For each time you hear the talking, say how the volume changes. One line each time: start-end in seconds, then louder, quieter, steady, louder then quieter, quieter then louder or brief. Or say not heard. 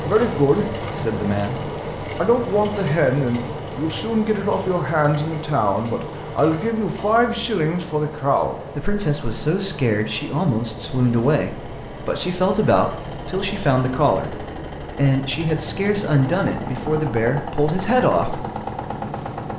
0.0-18.4 steady.